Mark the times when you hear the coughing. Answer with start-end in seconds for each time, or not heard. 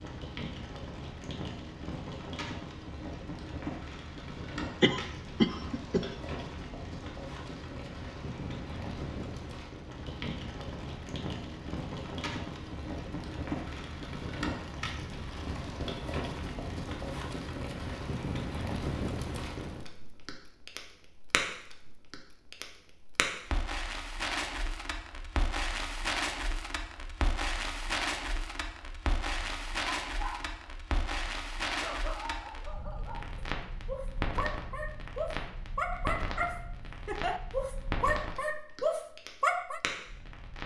4.8-6.1.